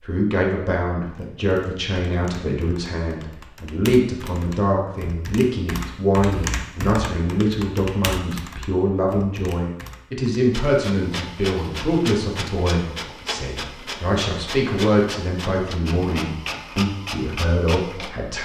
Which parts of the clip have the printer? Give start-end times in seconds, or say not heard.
10.5-18.3.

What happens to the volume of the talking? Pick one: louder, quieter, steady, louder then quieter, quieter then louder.
steady.